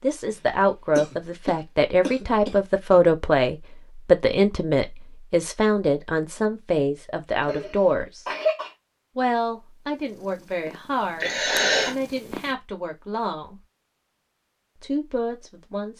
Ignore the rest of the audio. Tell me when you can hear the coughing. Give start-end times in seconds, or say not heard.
0.3-3.0, 7.4-8.7, 11.2-11.9.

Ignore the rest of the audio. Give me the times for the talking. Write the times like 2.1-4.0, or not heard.
0.0-8.2, 9.2-13.6, 14.8-15.9.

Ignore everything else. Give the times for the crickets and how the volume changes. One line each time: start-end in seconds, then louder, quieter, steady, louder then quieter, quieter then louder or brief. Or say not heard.
not heard.